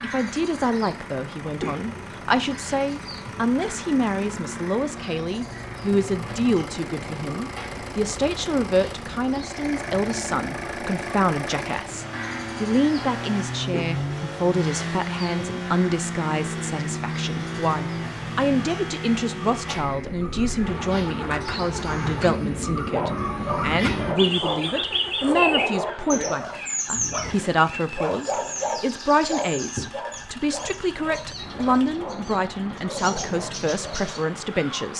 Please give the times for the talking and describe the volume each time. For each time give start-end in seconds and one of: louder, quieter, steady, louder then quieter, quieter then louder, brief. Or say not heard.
0.0-34.9 steady.